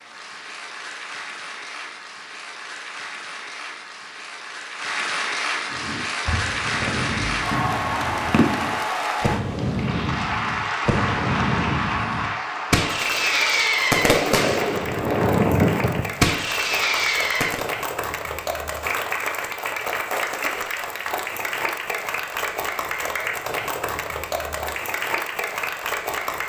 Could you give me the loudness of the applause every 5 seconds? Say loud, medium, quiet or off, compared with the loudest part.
medium, loud, loud, loud, loud, loud.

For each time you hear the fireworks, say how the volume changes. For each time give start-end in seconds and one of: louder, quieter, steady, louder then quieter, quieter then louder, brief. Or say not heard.
5.7-17.6 louder.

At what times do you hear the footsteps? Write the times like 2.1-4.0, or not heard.
not heard.